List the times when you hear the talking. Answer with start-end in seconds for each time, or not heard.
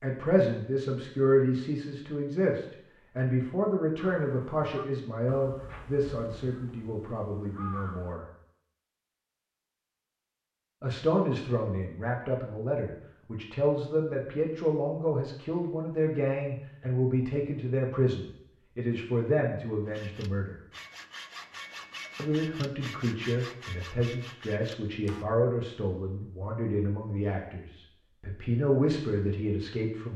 0.0-8.2, 10.8-20.6, 22.1-30.1.